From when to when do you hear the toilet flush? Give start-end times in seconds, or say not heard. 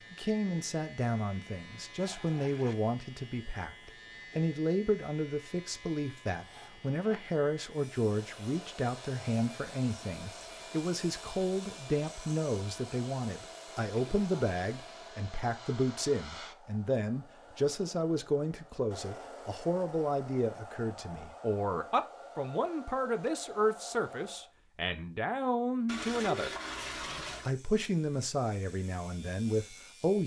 1.9-2.8, 13.9-14.5, 25.9-27.5.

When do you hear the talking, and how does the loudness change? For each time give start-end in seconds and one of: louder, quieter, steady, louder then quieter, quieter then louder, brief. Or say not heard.
0.1-26.6 steady
27.4-30.2 brief.